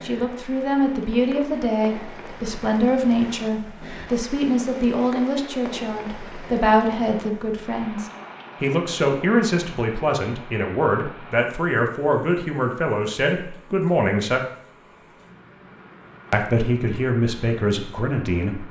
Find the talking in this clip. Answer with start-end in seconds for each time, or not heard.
0.0-14.4, 16.3-18.6.